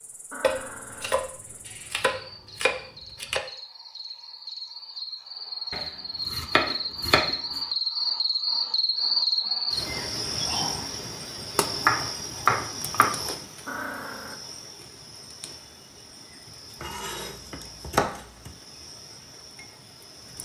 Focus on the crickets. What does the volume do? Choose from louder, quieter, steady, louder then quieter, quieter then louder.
louder then quieter.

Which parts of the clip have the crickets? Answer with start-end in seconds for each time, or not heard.
0.0-20.3.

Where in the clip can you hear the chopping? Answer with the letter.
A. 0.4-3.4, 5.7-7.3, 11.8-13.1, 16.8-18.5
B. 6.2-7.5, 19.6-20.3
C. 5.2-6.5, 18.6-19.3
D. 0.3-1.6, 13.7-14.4
A.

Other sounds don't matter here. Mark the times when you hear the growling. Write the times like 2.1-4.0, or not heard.
0.3-1.6, 13.7-14.4.